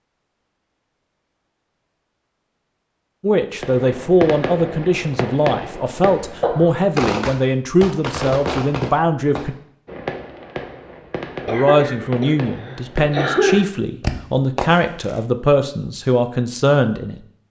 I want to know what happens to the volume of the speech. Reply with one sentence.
The loudness of the speech stays about the same.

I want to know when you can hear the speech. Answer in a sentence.
The speech can be heard from 3.2 to 9.6 s and from 11.4 to 17.4 s.